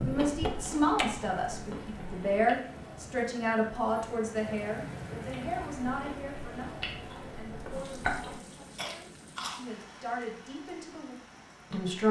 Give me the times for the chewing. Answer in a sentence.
The chewing can be heard from 0.0 to 2.5 s and from 5.3 to 9.6 s.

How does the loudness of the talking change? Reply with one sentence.
The loudness of the talking goes down, then up.